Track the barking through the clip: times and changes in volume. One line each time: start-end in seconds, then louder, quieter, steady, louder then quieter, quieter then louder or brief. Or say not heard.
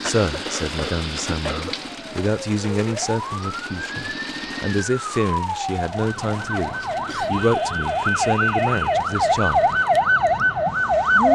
not heard.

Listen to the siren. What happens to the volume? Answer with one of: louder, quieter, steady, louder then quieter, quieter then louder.
louder.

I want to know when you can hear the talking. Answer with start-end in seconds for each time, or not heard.
0.0-9.8.